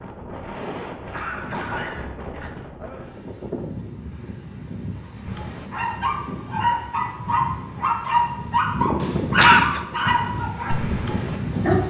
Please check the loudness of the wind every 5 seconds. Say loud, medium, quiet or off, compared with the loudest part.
medium, loud, loud.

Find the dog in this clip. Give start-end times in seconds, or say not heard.
5.2-11.8.